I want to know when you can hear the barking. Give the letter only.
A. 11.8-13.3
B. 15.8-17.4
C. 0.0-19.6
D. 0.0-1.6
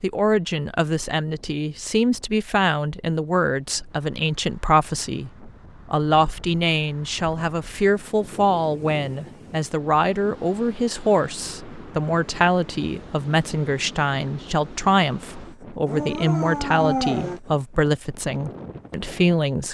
B.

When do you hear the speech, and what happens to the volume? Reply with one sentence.
You can hear the speech from 0.0 to 19.6 s, at a steady volume.